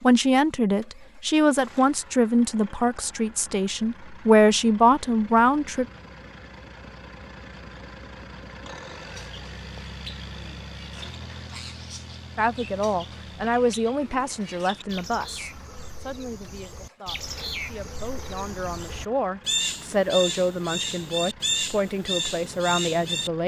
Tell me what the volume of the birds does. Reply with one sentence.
The volume of the birds goes up.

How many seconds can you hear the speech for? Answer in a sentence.
You can hear the speech for 17 seconds altogether.